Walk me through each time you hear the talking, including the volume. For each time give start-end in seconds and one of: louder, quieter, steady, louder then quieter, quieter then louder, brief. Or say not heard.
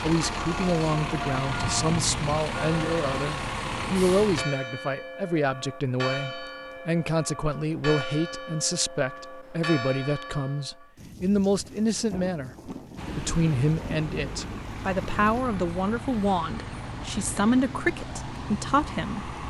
0.0-19.3 steady.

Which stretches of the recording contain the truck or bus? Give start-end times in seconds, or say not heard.
0.0-4.5, 12.9-19.4.